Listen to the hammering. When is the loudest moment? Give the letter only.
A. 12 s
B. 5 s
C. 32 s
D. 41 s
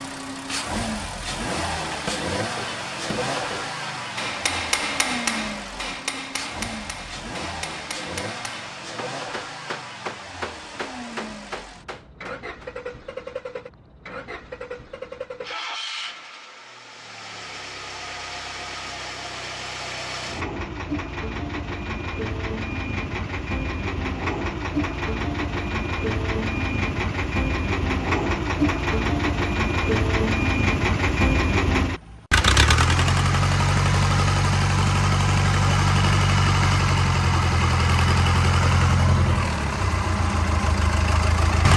B.